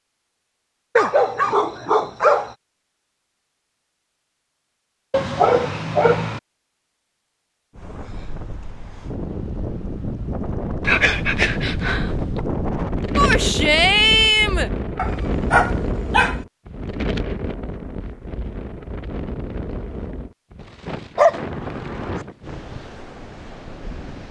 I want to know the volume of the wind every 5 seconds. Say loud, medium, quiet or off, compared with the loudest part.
off, medium, loud, loud, medium.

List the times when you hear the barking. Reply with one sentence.
The barking can be heard from 0.9 to 2.5 s, from 5.1 to 6.4 s, from 10.8 to 12.4 s, from 14.9 to 16.4 s and from 21.1 to 22.2 s.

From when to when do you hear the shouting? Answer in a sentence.
The shouting can be heard from 13.2 to 14.7 s.